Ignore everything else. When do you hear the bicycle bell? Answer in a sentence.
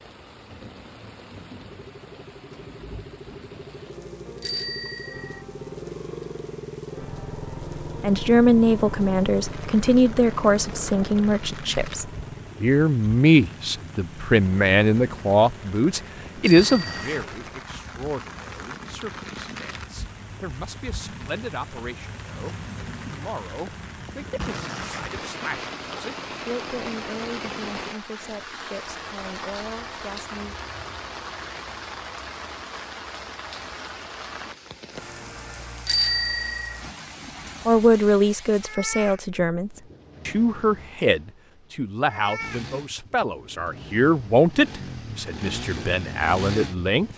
You can hear the bicycle bell from 4.4 to 5.4 s, from 16.4 to 17.1 s and from 35.9 to 36.8 s.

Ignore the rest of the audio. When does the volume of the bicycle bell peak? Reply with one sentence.
The loudest moment of the bicycle bell is at 36 seconds.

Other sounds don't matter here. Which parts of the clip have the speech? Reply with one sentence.
The speech can be heard from 8.0 to 30.6 s and from 37.6 to 47.1 s.